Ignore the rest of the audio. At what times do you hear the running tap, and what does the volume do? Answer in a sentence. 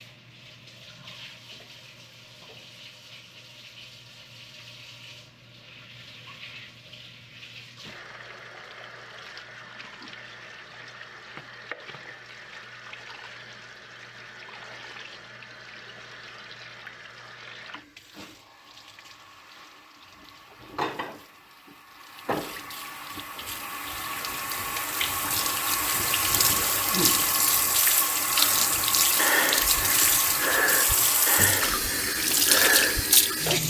The running tap can be heard from 0.0 to 33.6 s, getting louder.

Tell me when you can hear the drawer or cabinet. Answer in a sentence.
You can't hear the drawer or cabinet here.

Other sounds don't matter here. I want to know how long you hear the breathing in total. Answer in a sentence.
The breathing can be heard for 5 seconds in total.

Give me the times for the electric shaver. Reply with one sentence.
You can't hear the electric shaver here.